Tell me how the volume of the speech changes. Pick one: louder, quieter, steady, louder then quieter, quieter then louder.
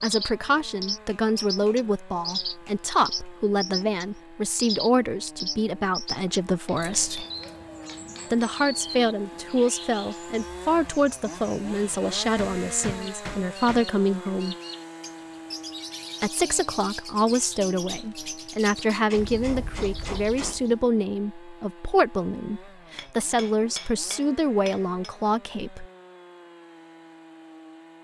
steady.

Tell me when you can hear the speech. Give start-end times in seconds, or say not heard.
0.0-7.2, 8.3-14.6, 16.2-25.9.